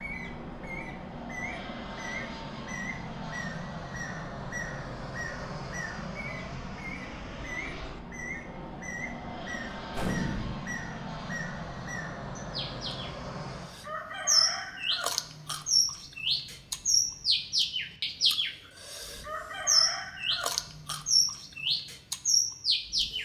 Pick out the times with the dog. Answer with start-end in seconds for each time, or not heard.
not heard.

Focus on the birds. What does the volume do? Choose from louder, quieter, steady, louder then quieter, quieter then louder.
louder.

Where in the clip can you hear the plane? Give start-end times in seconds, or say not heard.
0.0-23.1.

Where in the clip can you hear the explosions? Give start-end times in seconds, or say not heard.
9.9-10.6.